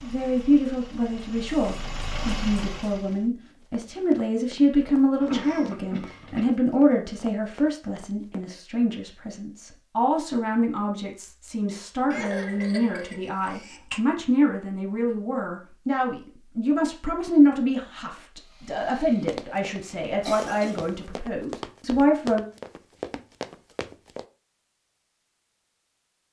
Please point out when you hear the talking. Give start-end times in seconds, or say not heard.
0.0-22.4.